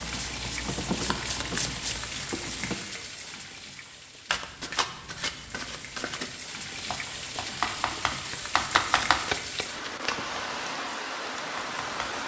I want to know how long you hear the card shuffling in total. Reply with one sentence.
You can hear the card shuffling for 6 seconds altogether.